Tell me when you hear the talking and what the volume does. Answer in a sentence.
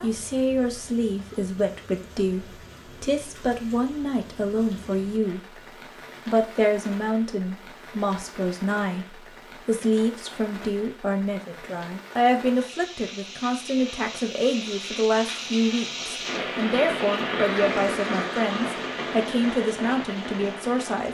The talking can be heard from 0.0 to 5.4 s, at a steady volume; and from 6.2 to 21.0 s, at a steady volume.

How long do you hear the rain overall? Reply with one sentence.
The rain can be heard for 21 seconds in total.